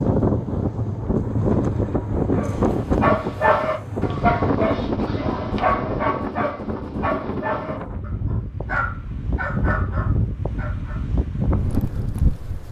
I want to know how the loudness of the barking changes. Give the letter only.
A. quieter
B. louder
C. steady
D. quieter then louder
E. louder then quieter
A.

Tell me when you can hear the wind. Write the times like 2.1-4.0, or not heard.
0.0-12.6.